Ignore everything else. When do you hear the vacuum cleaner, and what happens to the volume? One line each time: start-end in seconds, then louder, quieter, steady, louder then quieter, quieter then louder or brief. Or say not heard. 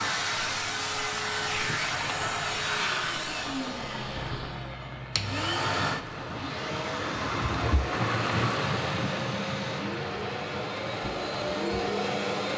0.0-12.5 quieter then louder.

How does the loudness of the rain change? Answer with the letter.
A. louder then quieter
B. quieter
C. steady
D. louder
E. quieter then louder
A.